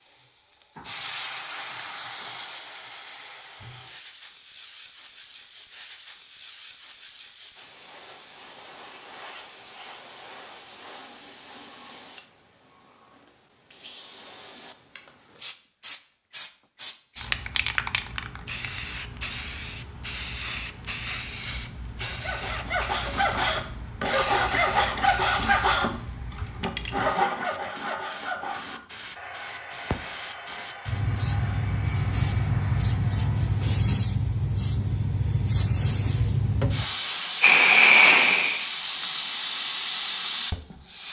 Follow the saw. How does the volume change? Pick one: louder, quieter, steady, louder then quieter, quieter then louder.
quieter.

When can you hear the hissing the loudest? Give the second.
38 s.